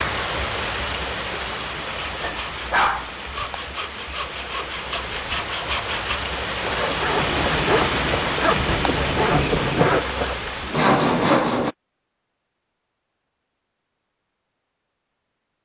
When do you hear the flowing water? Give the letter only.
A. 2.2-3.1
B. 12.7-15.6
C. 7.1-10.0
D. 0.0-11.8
D.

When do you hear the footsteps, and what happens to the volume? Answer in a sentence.
You can't hear the footsteps here.